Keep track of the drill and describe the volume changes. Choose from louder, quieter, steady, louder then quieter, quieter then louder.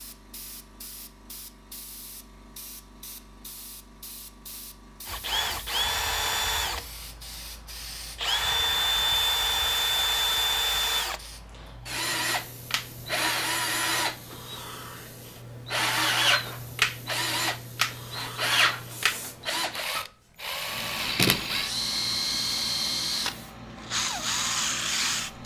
steady.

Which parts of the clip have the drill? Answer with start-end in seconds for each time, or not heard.
5.0-25.4.